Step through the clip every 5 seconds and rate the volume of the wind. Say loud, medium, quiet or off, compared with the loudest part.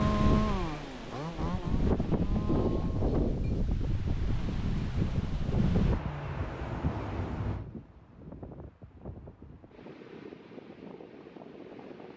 loud, loud, quiet.